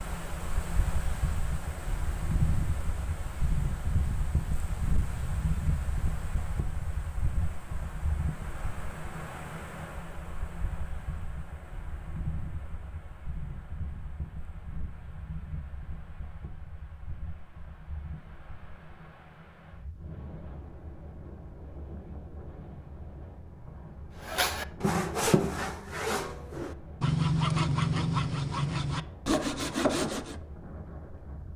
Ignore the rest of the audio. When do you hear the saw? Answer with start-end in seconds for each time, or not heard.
24.2-30.4.